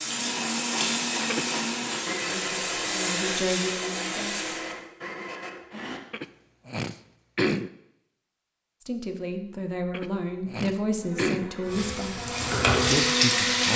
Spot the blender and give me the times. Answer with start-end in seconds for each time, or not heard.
0.0-6.0, 11.0-13.7.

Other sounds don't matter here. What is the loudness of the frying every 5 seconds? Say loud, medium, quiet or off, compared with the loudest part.
medium, off, loud.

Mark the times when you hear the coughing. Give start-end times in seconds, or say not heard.
1.2-1.9, 6.1-7.7, 9.9-11.5.